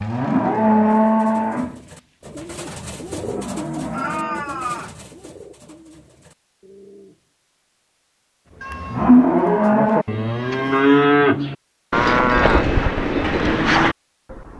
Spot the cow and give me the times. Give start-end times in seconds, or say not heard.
0.0-4.5, 8.7-14.5.